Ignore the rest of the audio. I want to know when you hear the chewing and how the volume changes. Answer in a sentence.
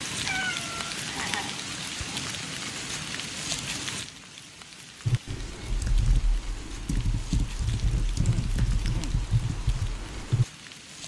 The chewing can't be heard in this clip.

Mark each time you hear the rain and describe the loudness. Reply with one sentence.
You can hear the rain from 0.0 to 11.0 s, getting quieter.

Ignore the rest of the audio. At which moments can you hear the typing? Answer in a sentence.
The typing can be heard from 5.0 to 10.4 s.